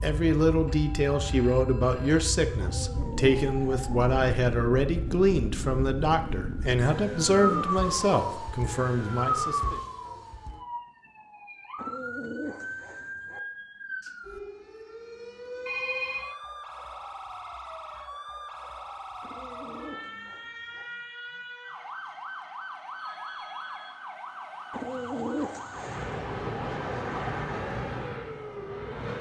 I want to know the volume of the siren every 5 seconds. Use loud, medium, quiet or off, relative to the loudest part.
medium, loud, medium, medium, medium, medium.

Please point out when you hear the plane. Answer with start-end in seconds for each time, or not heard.
25.7-29.1.